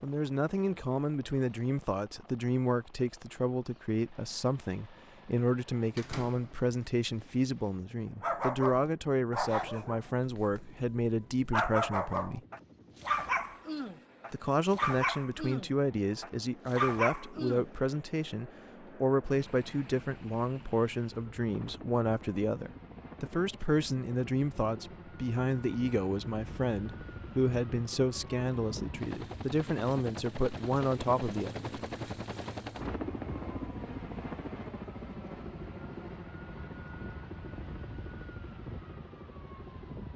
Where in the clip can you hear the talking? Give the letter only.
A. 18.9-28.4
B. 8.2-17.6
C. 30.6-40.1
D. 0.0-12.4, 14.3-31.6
D.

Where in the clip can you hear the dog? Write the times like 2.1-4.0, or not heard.
8.2-17.6.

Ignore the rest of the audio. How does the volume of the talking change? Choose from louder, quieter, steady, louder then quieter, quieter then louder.
steady.